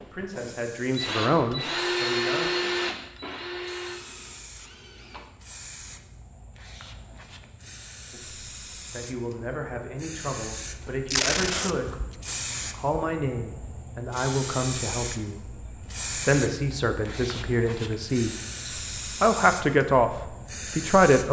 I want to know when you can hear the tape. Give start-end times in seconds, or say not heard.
11.1-12.2.